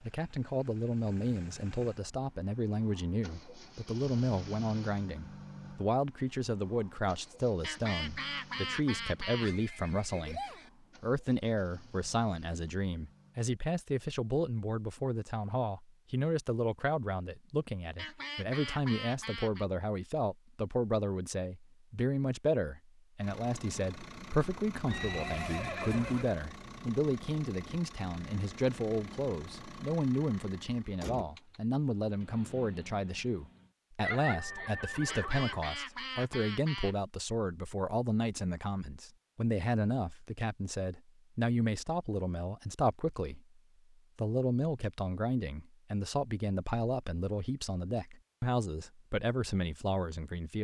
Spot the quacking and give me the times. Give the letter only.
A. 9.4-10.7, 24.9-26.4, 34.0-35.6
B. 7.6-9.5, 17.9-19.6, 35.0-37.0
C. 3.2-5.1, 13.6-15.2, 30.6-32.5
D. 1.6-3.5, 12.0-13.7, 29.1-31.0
B.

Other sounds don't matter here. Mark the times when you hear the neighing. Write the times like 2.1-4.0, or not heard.
9.4-10.7, 24.9-26.4, 34.0-35.6.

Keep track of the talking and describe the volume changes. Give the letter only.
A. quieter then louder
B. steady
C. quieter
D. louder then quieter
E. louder
B.